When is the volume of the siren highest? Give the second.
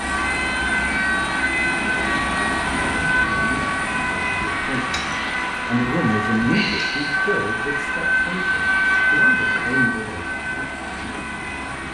9 s.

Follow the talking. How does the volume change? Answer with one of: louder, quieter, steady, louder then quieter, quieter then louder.
louder then quieter.